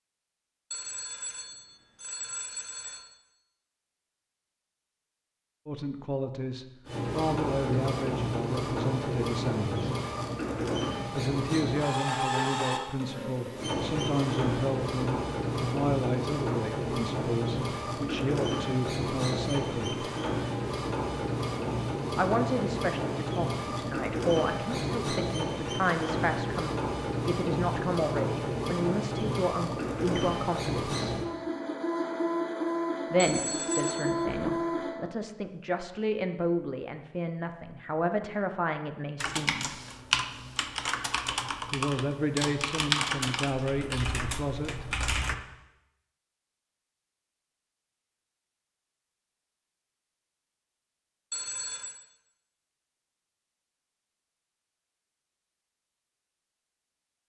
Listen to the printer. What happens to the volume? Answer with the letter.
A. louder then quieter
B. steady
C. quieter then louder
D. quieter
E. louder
B.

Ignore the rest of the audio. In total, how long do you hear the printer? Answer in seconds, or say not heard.
28 s.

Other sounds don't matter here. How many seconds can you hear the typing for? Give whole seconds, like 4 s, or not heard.
6 s.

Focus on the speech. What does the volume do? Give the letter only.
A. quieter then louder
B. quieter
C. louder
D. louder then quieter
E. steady
E.